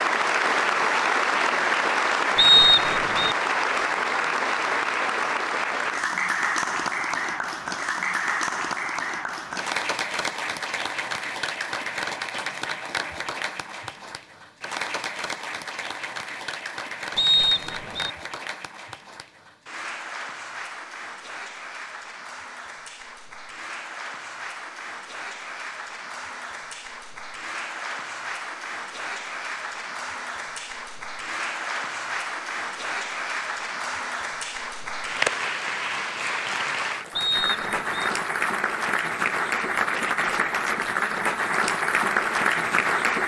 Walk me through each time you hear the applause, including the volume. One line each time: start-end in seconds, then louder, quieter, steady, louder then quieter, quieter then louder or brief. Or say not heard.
0.0-43.2 quieter then louder.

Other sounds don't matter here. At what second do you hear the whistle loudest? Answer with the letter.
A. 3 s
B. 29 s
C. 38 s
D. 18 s
A.